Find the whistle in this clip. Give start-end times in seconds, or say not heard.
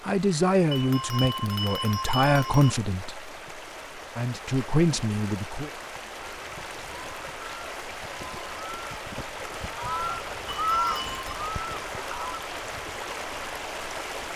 not heard.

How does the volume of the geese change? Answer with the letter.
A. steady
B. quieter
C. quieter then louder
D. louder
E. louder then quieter
E.